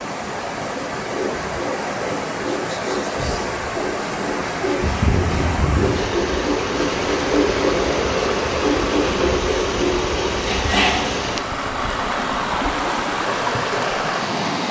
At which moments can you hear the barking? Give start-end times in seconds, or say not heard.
not heard.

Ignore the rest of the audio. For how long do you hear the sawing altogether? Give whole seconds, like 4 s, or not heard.
10 s.